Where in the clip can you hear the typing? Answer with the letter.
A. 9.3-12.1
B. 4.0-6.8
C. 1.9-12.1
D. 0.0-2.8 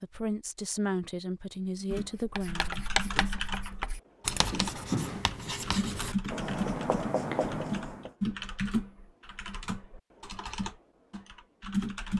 C.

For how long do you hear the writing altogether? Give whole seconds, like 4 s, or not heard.
6 s.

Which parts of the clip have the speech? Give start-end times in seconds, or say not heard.
0.0-2.8.